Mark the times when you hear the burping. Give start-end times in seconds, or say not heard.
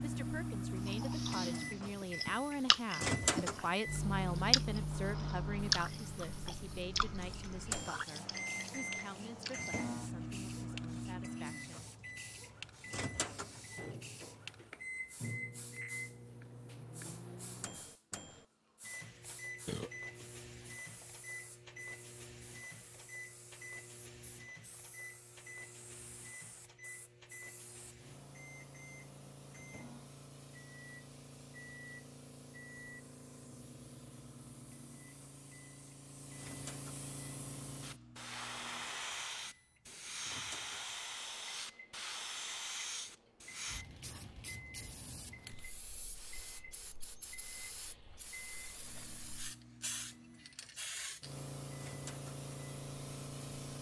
19.6-20.4.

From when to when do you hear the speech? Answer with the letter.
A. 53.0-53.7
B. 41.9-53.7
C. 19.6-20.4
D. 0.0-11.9
D.